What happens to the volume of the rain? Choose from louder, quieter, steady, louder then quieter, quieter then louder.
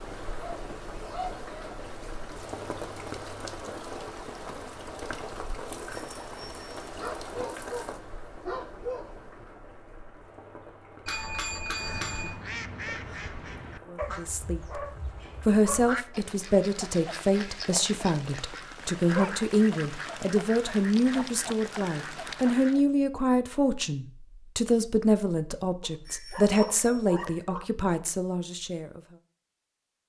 quieter.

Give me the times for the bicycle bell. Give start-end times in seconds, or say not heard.
6.0-6.8, 11.1-12.3, 26.1-27.1.